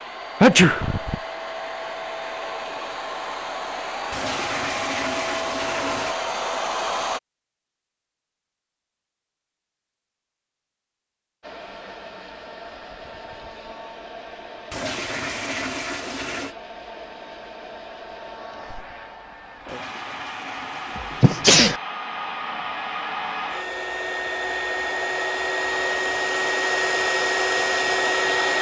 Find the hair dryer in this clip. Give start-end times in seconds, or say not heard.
0.0-7.2, 11.4-28.5.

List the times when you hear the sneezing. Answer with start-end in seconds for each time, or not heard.
0.4-1.1, 20.9-21.8.